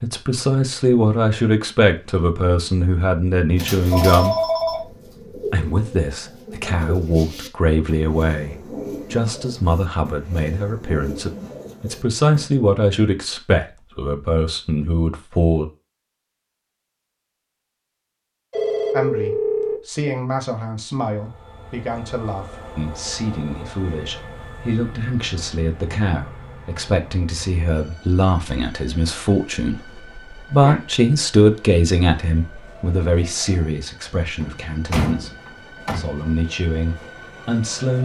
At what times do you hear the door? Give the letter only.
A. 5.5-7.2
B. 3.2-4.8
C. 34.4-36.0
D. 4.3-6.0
C.